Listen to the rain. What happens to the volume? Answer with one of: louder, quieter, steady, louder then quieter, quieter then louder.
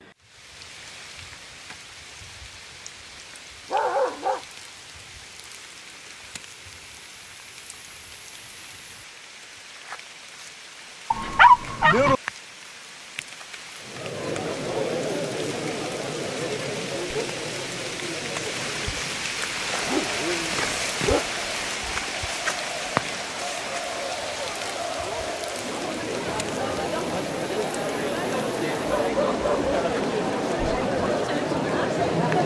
louder then quieter.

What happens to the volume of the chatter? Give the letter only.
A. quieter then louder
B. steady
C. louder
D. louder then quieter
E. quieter
A.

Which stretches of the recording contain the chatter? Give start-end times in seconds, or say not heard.
13.8-32.4.